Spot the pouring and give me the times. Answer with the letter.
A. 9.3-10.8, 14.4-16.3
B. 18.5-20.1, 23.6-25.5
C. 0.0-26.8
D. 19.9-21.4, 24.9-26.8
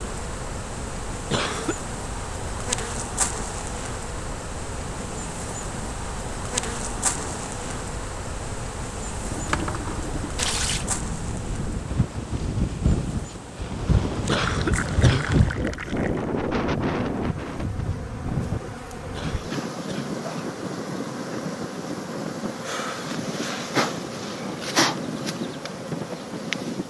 A.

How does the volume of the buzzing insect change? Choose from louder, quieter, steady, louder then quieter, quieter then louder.
quieter then louder.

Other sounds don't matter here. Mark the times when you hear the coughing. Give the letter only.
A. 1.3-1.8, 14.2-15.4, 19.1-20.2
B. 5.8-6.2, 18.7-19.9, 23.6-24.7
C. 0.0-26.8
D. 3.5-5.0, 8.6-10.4
A.